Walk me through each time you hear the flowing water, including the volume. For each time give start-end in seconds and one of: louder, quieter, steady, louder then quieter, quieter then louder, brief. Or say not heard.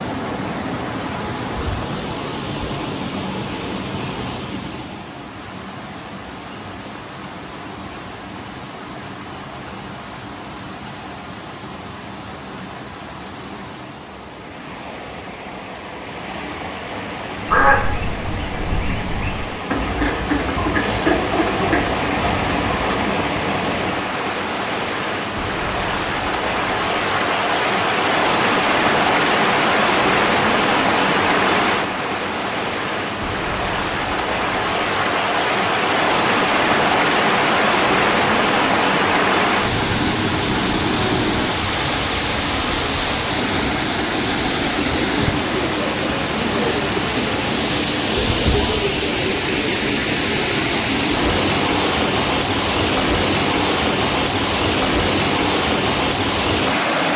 0.0-57.1 louder.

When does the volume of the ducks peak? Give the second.
18 s.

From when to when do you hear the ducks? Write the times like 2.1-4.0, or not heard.
17.4-23.0.